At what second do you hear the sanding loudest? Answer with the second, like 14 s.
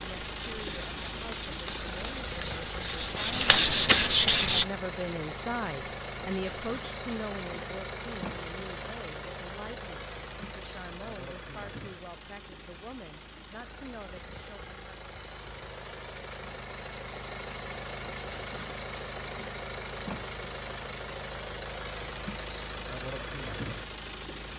4 s.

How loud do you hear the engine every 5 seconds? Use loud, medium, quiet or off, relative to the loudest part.
loud, loud, medium, loud, loud.